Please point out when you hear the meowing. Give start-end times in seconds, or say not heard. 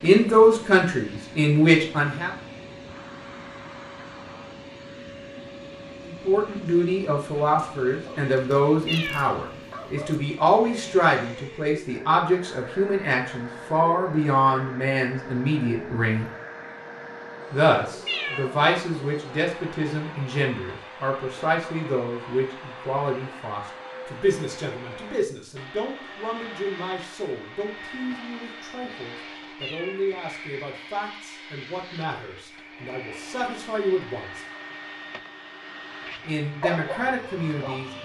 8.8-9.3, 18.1-18.5, 29.6-30.1.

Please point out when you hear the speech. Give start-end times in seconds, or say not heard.
0.0-2.3, 6.0-16.2, 17.5-34.4, 36.2-37.9.